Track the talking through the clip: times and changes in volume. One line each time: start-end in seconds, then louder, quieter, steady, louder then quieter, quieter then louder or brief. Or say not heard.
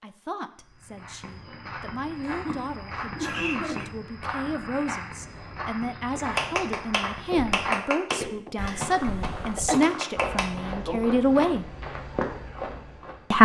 0.0-11.7 louder.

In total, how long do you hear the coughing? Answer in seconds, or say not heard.
3 s.